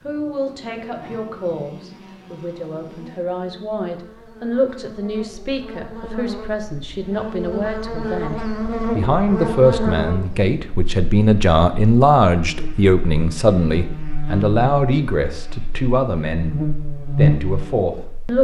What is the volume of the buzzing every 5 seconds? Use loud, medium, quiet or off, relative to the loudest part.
quiet, loud, medium, loud.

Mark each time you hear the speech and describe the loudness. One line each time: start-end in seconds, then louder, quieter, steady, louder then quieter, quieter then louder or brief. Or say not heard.
0.0-16.6 louder
17.1-18.3 brief.